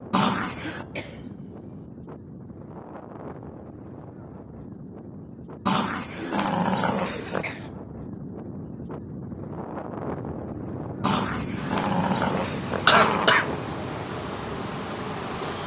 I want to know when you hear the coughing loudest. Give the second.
13 s.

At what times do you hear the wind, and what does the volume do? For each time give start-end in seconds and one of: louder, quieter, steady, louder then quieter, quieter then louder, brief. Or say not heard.
0.0-15.6 louder.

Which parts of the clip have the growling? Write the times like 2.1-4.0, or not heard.
0.1-0.8, 5.7-7.5, 11.0-13.3.